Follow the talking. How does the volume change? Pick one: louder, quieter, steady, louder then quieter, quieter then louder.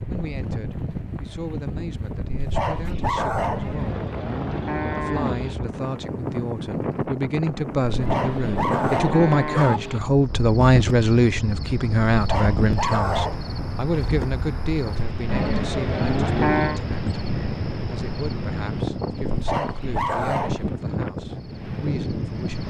louder then quieter.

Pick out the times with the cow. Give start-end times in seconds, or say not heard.
3.5-5.5, 8.0-10.0, 15.2-16.8.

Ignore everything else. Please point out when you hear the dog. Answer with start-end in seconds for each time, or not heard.
2.4-3.8, 8.0-9.8, 12.1-13.5, 19.2-20.6.